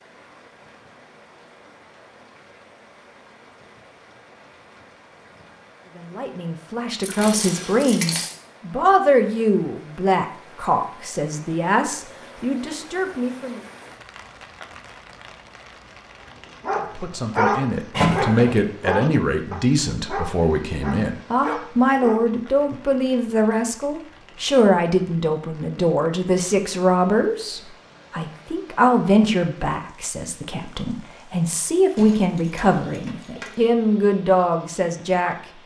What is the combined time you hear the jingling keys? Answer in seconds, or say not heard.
4 s.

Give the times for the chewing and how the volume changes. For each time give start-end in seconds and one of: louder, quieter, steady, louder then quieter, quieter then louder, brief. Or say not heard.
not heard.